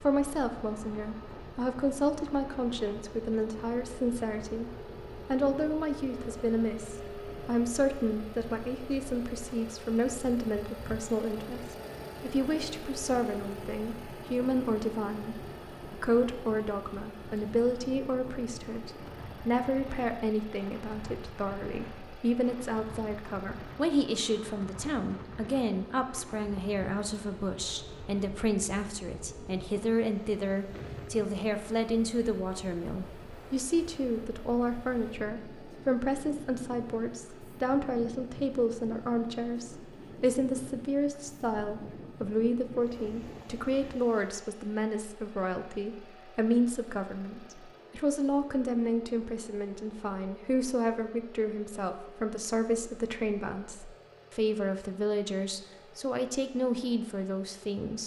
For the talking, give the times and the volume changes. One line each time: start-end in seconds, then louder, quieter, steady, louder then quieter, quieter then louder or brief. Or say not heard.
0.0-58.0 steady.